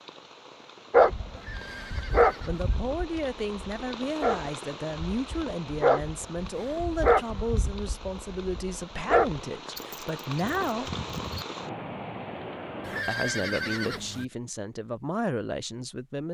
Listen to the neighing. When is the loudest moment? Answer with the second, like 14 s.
13 s.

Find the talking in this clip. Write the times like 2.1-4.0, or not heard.
2.4-10.9, 13.1-16.2.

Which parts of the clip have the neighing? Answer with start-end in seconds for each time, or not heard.
1.4-2.6, 12.8-14.2.